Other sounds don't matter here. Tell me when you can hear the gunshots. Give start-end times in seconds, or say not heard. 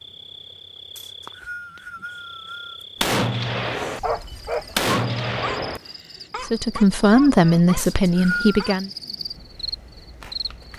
3.0-5.8.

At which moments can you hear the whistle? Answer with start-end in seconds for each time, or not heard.
0.9-2.9, 7.8-8.6.